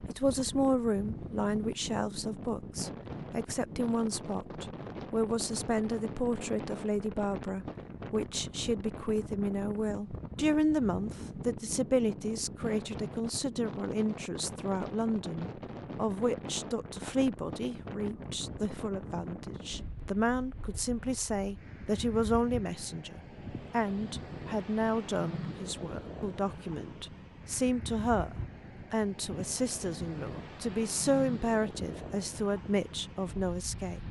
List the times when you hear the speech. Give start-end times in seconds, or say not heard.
0.1-34.0.